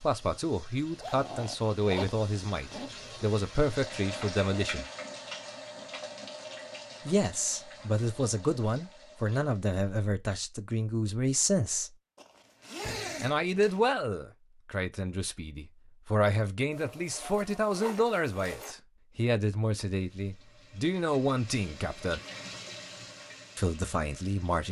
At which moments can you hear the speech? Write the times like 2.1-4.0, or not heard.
0.0-4.8, 7.0-11.9, 13.2-22.2, 23.6-24.6.